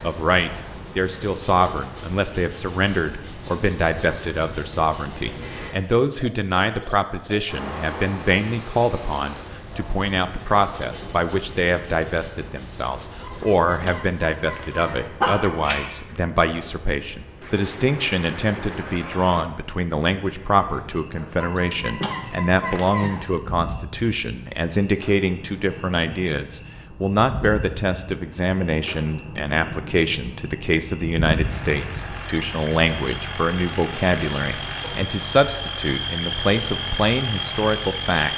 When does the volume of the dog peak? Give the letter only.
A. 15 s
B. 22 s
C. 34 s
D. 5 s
A.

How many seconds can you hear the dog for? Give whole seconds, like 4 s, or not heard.
4 s.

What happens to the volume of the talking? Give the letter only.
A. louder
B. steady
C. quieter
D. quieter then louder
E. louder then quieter
B.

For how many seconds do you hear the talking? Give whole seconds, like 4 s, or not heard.
38 s.